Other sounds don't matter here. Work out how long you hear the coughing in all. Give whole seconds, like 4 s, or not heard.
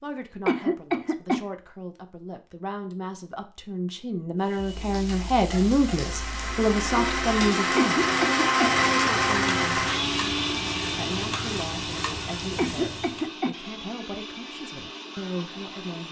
3 s.